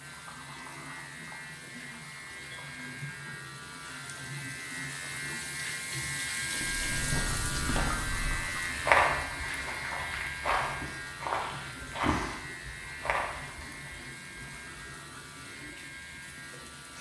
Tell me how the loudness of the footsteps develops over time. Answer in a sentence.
The volume of the footsteps goes up, then down.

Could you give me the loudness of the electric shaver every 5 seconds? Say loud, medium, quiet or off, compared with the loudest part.
medium, loud, medium, medium.